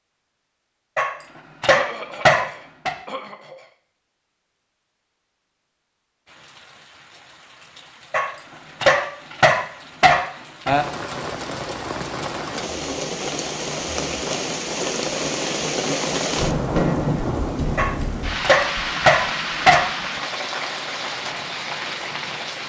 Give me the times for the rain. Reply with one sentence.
You can hear the rain from 6.2 to 22.6 s.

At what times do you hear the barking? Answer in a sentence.
The barking can be heard from 0.9 to 3.0 s, from 8.1 to 10.8 s and from 17.8 to 19.9 s.